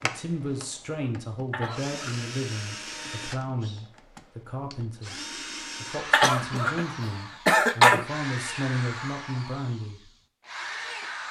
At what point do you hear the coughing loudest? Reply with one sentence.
The volume of the coughing peaks at 8 seconds.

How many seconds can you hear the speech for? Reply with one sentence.
The speech can be heard for 10 seconds in total.